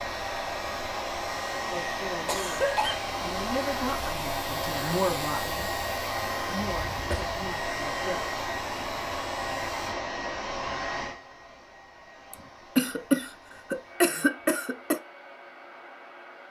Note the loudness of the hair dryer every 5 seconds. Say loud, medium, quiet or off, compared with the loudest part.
loud, loud, medium, quiet.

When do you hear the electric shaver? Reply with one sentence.
You can hear the electric shaver from 0.0 to 9.8 s.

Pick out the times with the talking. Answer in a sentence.
You can hear the talking from 1.7 to 5.7 s and from 6.5 to 8.3 s.